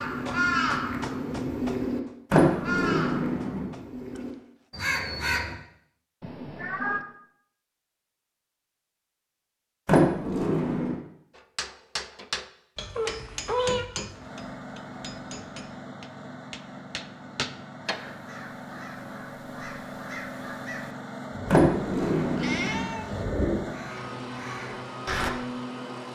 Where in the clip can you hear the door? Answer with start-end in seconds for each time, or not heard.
2.3-3.6, 9.8-10.9, 21.5-22.9.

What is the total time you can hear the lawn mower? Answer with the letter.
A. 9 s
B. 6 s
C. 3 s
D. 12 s
D.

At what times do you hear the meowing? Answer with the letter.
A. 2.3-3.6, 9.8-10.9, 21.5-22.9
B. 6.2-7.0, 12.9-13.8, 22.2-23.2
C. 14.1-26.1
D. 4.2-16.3
B.